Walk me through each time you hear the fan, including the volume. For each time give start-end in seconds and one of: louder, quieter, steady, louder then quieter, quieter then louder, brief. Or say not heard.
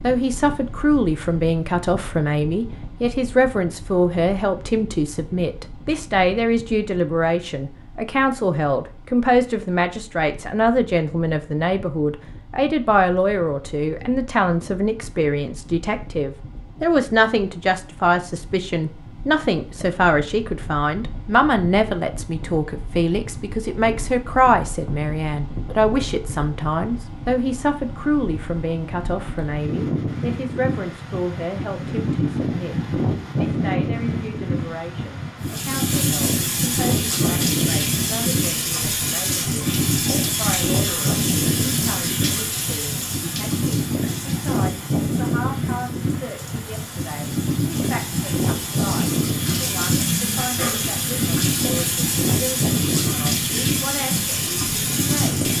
0.0-55.5 louder.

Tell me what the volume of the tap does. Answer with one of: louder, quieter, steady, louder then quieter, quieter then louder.
quieter then louder.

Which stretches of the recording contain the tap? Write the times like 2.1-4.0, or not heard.
35.4-55.5.